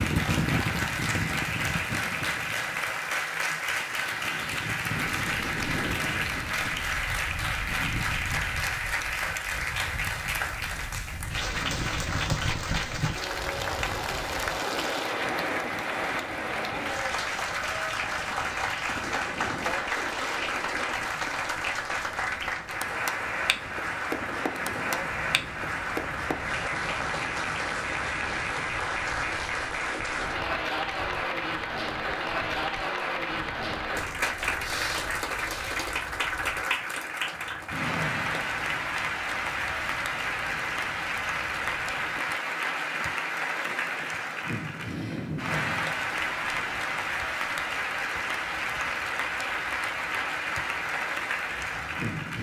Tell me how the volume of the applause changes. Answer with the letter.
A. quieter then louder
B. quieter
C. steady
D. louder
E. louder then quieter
C.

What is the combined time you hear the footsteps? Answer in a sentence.
The footsteps can't be heard in this clip.